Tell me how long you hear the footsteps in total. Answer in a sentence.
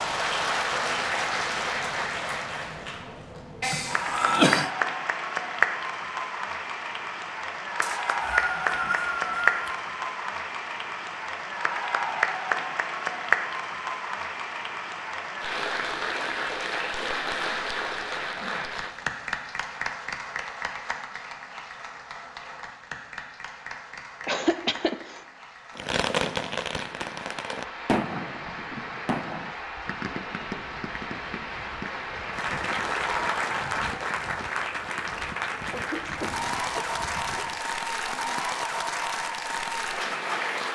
You can't hear the footsteps here.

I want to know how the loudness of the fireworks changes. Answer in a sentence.
The loudness of the fireworks goes down.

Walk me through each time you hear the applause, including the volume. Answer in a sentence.
The applause can be heard from 0.0 to 40.7 s, getting quieter then louder.